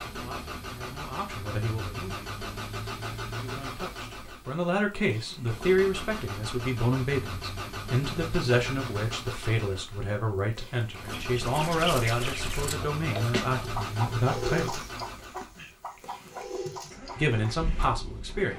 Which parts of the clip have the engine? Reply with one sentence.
You can hear the engine from 0.0 to 18.5 s.